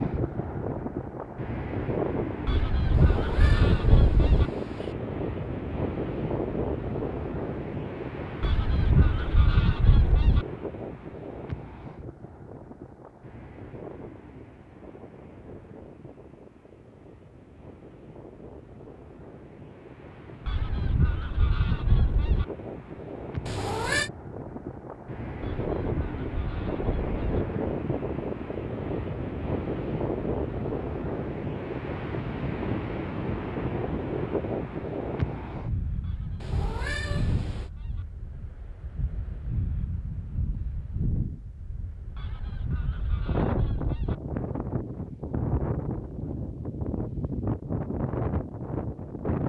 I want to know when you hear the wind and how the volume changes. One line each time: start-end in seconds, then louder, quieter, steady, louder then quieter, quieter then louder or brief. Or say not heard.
0.0-49.4 quieter then louder.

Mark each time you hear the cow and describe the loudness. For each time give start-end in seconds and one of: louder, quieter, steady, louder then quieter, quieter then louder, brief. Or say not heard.
not heard.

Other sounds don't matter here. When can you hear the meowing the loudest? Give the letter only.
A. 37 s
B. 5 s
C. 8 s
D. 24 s
D.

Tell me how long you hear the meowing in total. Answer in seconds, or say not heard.
4 s.